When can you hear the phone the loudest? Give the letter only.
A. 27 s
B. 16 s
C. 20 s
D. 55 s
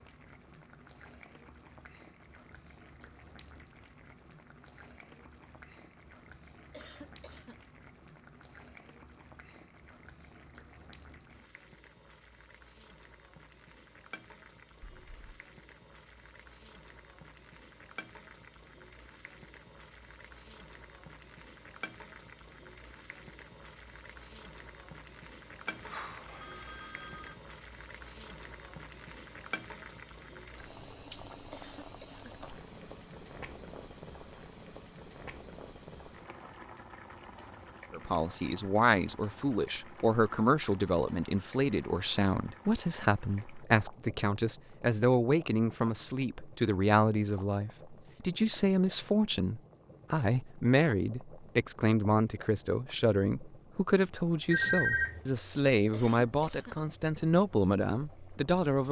D.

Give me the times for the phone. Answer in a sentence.
You can hear the phone from 14.8 to 15.2 s, from 25.6 to 27.4 s and from 54.5 to 55.2 s.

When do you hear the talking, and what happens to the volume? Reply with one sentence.
You can hear the talking from 37.9 to 58.8 s, at a steady volume.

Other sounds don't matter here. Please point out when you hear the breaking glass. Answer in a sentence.
You can't hear the breaking glass here.